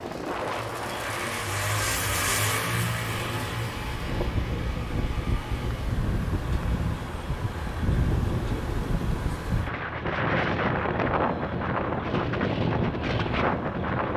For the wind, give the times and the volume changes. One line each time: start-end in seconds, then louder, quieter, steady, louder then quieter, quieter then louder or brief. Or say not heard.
0.0-14.1 louder.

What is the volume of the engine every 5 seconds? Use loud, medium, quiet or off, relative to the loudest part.
loud, medium, medium.